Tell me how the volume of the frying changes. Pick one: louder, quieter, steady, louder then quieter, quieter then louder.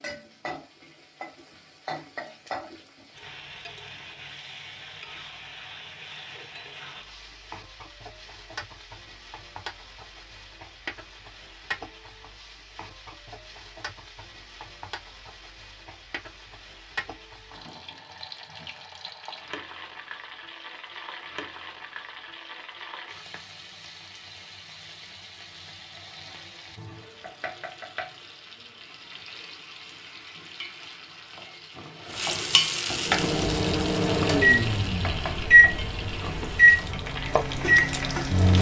louder.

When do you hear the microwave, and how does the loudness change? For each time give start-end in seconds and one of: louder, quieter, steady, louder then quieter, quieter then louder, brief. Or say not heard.
33.0-38.5 louder then quieter.